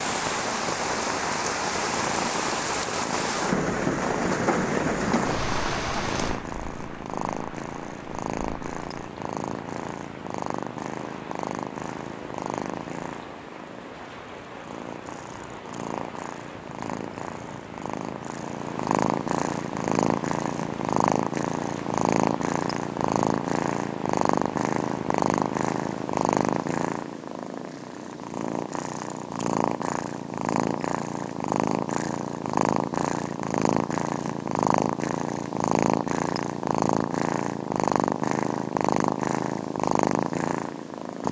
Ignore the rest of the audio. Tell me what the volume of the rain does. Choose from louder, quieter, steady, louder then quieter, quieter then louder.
quieter.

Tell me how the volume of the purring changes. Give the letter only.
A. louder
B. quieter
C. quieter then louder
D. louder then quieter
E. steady
A.